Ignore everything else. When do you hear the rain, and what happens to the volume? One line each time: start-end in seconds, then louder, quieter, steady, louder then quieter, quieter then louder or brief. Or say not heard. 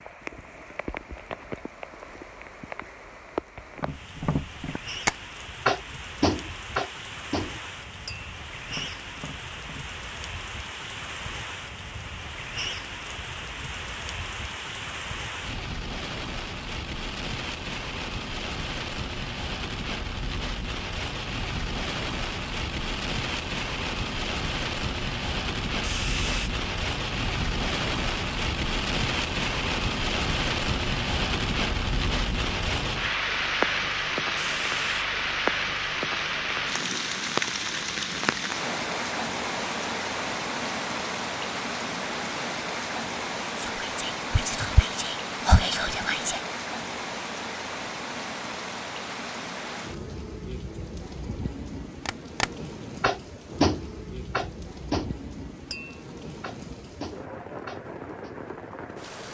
0.0-59.2 louder then quieter.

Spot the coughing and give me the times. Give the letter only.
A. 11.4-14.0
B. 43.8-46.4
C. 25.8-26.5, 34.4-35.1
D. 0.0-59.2
C.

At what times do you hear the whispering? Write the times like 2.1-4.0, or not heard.
43.8-46.4.